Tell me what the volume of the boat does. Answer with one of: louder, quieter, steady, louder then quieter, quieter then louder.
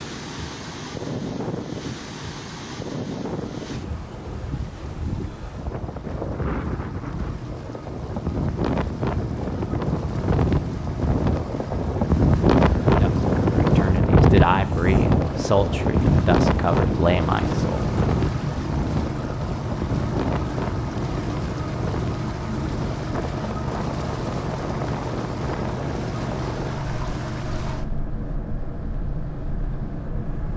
louder.